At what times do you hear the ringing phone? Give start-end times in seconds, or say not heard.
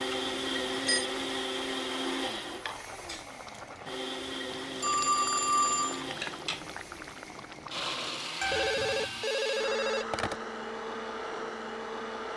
0.1-1.1, 4.8-6.0, 8.4-10.3.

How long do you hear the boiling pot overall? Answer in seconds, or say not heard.
8 s.